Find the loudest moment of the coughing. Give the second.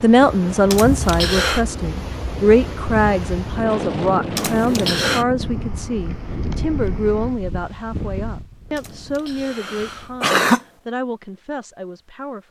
10 s.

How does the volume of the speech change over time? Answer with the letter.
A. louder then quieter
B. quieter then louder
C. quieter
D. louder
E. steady
C.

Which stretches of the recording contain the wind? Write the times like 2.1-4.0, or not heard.
0.0-10.2.